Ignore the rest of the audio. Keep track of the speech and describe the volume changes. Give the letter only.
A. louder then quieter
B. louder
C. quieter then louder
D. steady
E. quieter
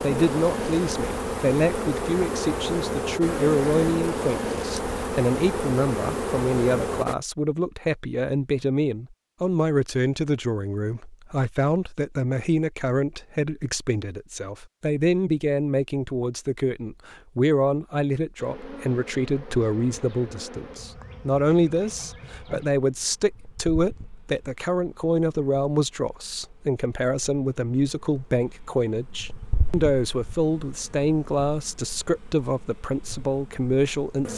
D.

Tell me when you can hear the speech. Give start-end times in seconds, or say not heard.
0.0-34.3.